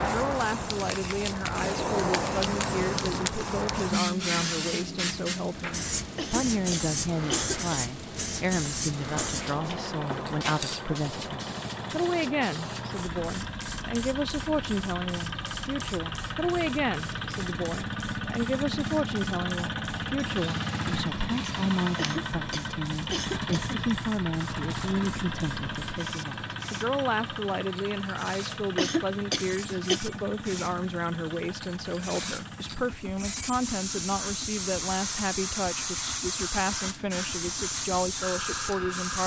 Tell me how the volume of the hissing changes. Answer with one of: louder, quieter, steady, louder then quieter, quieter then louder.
quieter then louder.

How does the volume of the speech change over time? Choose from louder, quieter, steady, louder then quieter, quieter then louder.
steady.